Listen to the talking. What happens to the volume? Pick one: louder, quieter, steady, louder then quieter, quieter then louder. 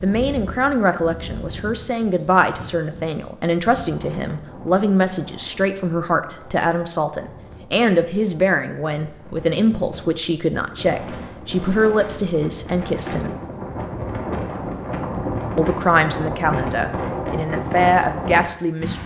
steady.